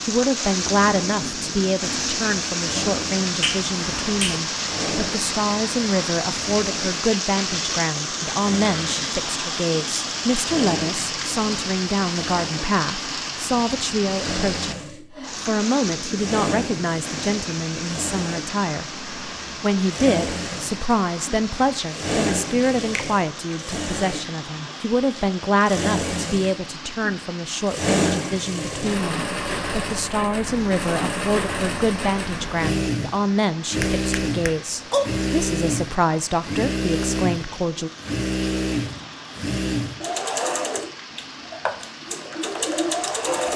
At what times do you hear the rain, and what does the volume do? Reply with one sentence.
The rain can be heard from 0.0 to 43.5 s, getting quieter.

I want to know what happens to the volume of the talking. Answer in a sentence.
The loudness of the talking stays about the same.